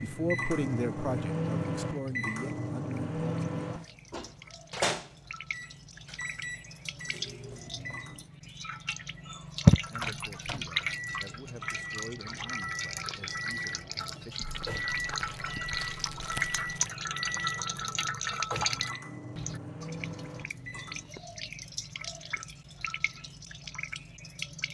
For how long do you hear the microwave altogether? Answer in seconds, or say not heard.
20 s.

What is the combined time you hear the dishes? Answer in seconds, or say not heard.
not heard.